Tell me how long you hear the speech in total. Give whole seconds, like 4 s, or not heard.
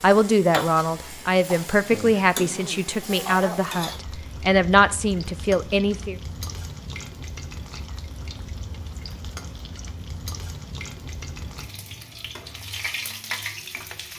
6 s.